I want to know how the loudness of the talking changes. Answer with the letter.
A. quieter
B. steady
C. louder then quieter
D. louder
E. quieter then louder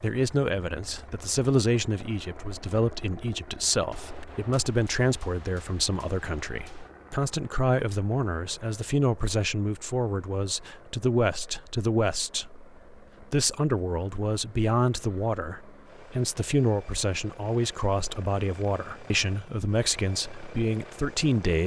B.